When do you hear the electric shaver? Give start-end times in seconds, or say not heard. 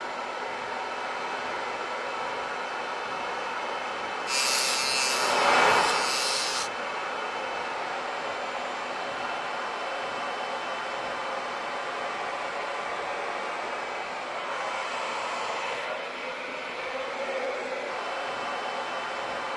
4.2-6.7.